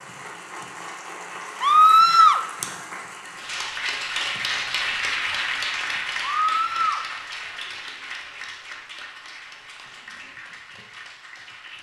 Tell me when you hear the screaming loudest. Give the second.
2 s.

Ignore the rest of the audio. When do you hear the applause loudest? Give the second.
5 s.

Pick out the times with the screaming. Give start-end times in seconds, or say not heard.
1.6-2.4, 6.4-7.0.